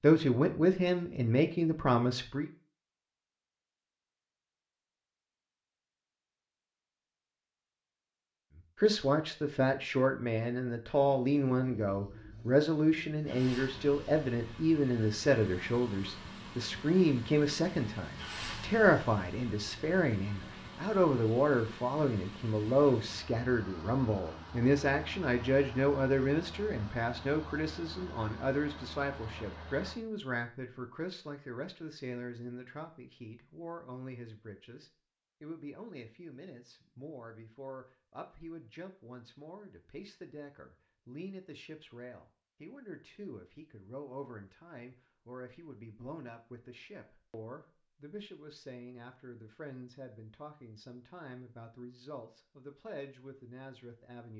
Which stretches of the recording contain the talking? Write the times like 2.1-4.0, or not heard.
0.0-2.5, 8.8-54.3.